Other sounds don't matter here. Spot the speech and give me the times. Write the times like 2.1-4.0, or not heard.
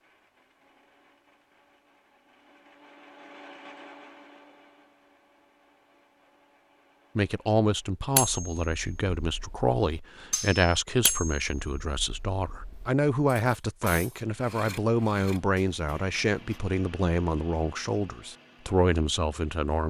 7.2-19.8.